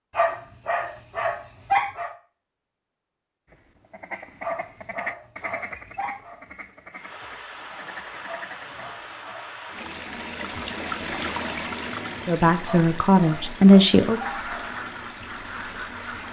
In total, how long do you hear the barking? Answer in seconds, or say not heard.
7 s.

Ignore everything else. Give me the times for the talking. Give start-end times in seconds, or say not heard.
12.2-14.2.